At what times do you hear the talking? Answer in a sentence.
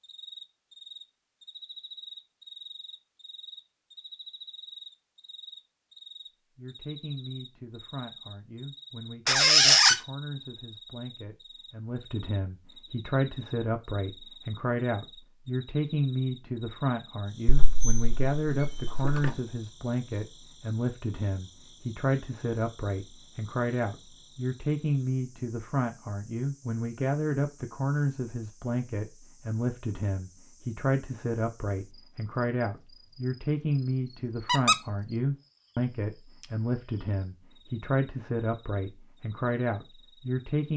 You can hear the talking from 6.5 to 40.7 s.